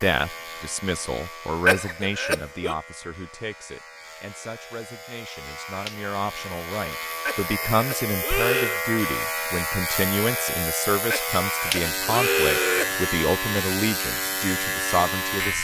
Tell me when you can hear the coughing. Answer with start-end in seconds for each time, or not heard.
1.6-2.8, 7.2-8.8, 11.1-13.1.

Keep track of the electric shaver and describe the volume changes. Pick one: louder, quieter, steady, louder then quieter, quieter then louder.
louder.